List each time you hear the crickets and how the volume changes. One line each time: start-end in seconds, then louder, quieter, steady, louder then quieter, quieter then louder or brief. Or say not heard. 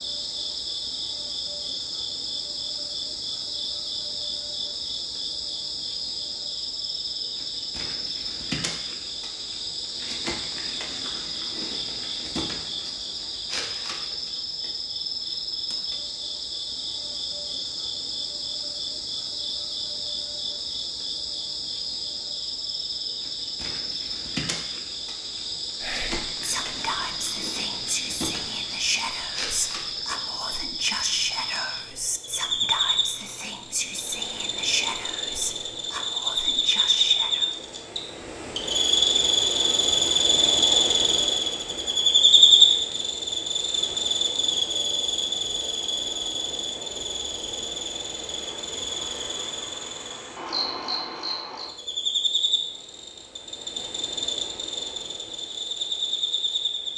0.0-56.9 louder then quieter.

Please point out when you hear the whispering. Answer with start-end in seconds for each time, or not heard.
25.8-37.5.